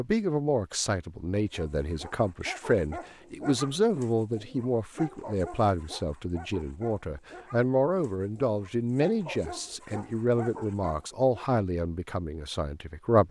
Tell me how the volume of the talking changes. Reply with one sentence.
The loudness of the talking stays about the same.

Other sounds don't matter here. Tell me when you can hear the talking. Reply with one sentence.
You can hear the talking from 0.0 to 13.2 s.